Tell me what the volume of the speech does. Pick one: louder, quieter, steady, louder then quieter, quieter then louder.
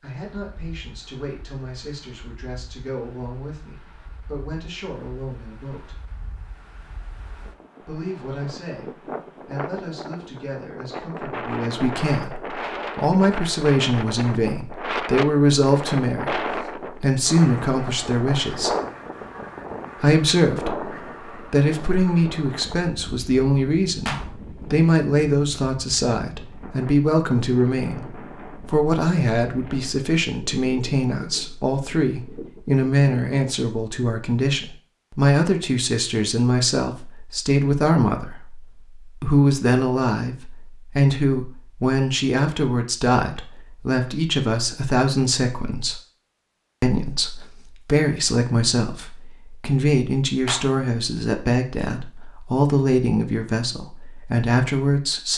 louder.